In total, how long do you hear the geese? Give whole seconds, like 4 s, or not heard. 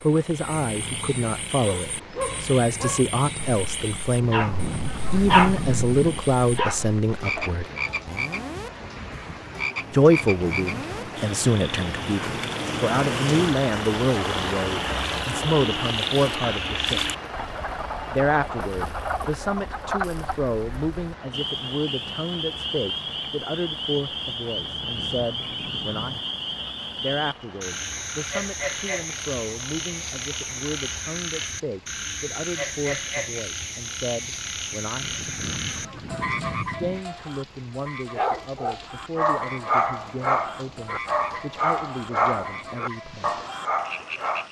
6 s.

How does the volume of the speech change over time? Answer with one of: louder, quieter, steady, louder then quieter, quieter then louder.
quieter.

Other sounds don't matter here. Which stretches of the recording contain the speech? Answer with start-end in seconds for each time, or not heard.
0.0-7.7, 9.9-17.1, 18.1-26.1, 27.0-35.0, 36.6-43.4.